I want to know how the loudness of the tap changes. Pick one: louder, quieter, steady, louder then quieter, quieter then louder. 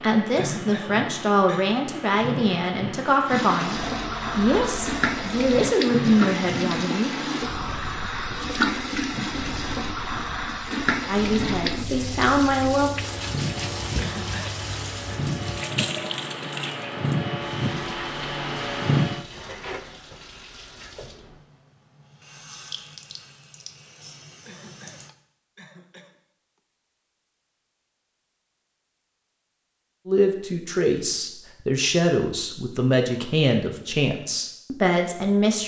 quieter.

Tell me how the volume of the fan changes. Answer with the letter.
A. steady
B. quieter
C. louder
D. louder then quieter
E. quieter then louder
E.